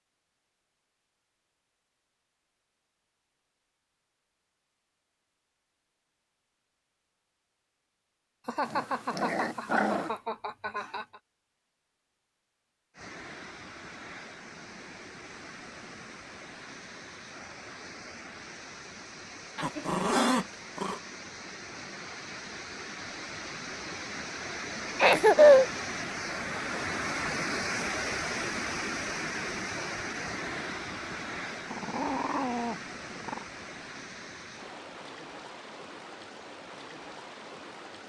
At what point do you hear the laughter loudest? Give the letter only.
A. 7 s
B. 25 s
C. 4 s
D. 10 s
B.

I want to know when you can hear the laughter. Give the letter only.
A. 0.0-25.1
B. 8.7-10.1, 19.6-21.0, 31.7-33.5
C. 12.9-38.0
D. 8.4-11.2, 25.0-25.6
D.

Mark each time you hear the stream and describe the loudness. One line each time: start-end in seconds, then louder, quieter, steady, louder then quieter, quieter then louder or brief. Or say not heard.
12.9-38.0 louder then quieter.